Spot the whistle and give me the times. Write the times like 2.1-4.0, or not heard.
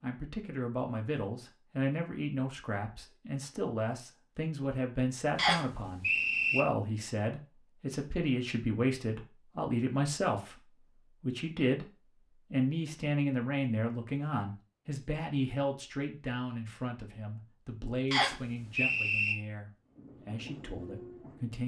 5.3-6.7, 18.1-19.4.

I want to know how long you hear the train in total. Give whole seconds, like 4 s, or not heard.
2 s.